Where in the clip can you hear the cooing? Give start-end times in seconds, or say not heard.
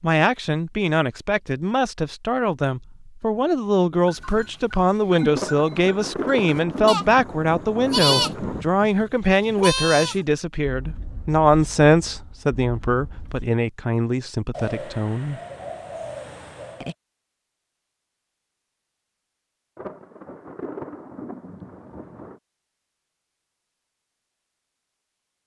14.5-16.9.